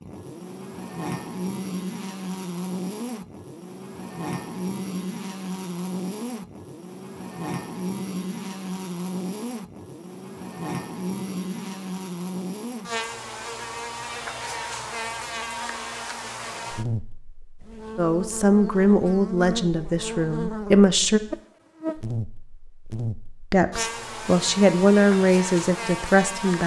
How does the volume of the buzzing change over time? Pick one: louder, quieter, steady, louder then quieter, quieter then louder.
steady.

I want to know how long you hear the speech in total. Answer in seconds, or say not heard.
6 s.